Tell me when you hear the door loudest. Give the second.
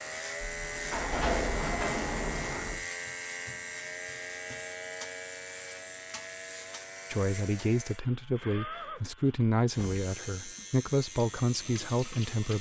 1 s.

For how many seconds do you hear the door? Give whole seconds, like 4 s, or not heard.
4 s.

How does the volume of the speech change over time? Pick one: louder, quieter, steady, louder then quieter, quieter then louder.
steady.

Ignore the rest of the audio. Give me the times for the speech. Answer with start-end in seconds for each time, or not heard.
7.1-12.5.